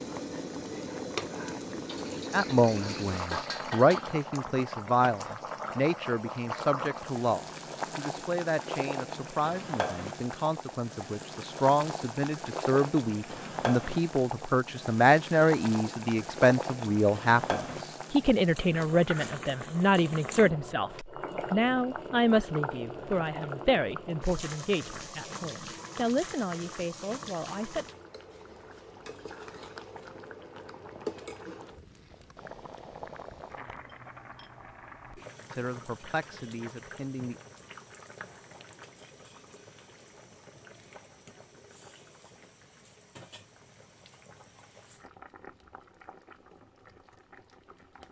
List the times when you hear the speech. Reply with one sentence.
The speech can be heard from 2.3 to 27.9 s and from 35.5 to 37.4 s.